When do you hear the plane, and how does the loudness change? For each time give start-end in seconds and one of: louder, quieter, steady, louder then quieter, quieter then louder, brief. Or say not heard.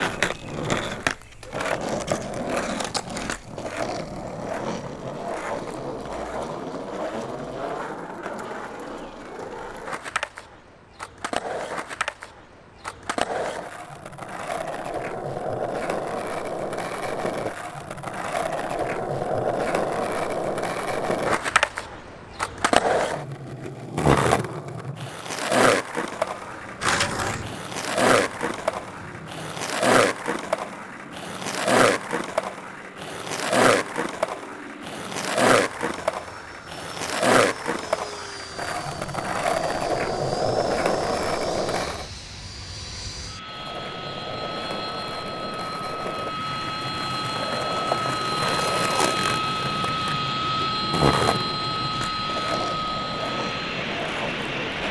26.1-54.8 louder.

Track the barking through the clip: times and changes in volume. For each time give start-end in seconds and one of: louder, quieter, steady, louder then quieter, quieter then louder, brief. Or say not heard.
not heard.